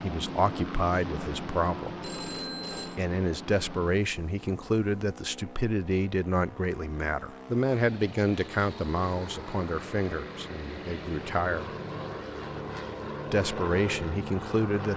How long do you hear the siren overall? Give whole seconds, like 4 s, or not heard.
not heard.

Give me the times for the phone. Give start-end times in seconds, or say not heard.
2.0-3.0.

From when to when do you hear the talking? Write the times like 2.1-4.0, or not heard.
0.0-2.1, 3.0-11.7, 13.3-14.9.